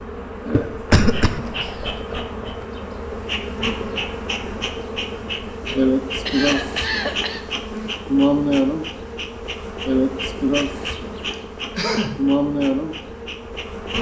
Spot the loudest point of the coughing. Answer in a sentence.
The volume of the coughing peaks at 1 second.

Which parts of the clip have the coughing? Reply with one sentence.
You can hear the coughing from 0.5 to 2.0 s, from 6.2 to 7.4 s and from 11.3 to 12.2 s.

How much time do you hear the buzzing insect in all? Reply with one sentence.
The buzzing insect can be heard for 14 seconds in total.